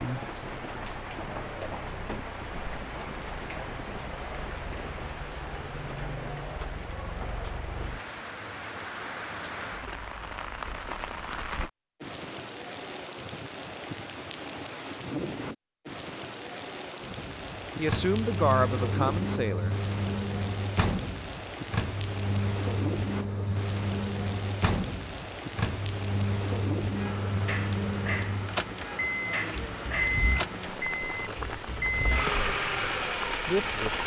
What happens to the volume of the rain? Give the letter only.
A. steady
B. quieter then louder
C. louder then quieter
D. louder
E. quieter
A.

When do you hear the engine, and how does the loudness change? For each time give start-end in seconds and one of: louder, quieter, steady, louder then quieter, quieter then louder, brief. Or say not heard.
17.2-34.0 steady.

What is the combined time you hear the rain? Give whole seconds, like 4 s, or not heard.
34 s.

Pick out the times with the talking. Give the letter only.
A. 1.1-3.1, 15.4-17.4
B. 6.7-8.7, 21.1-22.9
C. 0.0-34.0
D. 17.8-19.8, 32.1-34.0
D.